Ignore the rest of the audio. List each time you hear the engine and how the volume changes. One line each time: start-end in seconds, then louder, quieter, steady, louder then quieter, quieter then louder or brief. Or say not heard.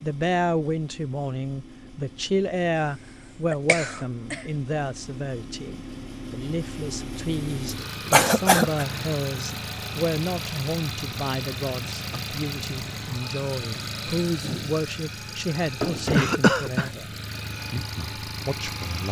0.0-19.0 louder.